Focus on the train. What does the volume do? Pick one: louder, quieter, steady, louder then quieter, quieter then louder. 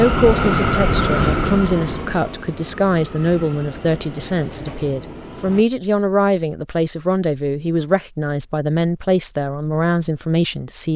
quieter.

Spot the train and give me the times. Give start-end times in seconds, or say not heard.
0.0-5.7.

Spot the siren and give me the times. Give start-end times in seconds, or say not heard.
not heard.